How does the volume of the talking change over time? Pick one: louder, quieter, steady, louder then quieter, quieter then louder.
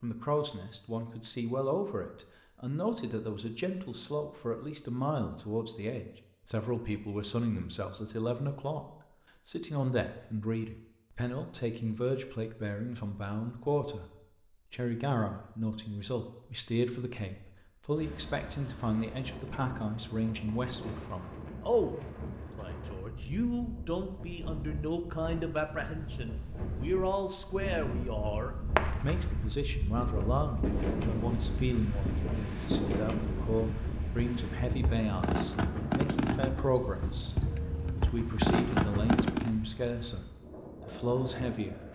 steady.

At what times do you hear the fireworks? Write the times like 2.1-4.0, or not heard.
28.8-39.5.